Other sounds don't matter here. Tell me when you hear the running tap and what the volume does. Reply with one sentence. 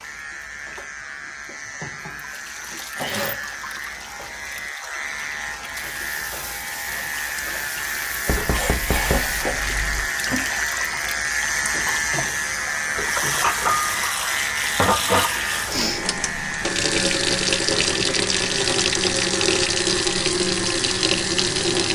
You can hear the running tap from 0.0 to 21.9 s, getting louder.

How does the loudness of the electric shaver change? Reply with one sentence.
The volume of the electric shaver goes up, then down.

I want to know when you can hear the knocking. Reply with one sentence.
The knocking can be heard from 8.2 to 10.1 s.